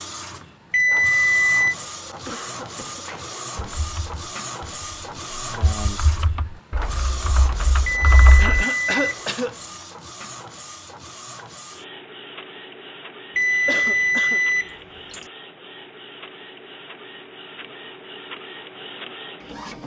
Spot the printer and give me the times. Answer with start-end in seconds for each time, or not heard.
0.0-19.8.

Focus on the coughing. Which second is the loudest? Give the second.
9 s.